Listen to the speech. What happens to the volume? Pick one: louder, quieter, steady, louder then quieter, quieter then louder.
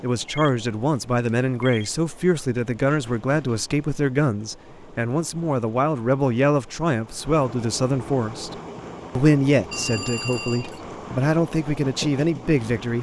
steady.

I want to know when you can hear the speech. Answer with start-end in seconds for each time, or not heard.
0.0-8.6, 9.2-12.9.